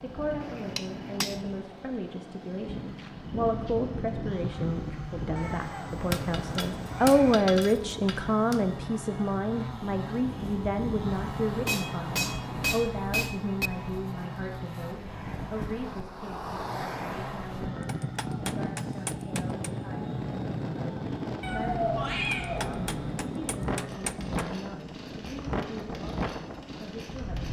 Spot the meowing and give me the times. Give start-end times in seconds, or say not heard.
5.3-7.3, 21.4-23.3.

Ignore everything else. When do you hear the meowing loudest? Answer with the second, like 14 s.
22 s.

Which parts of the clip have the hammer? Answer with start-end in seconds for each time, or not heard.
0.4-1.4, 6.1-8.8, 11.7-13.7, 17.9-19.7, 22.3-24.4.